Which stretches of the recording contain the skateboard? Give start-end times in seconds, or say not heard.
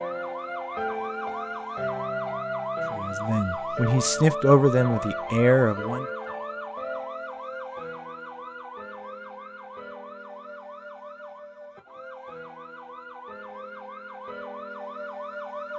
not heard.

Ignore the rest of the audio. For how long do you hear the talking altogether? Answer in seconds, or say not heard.
3 s.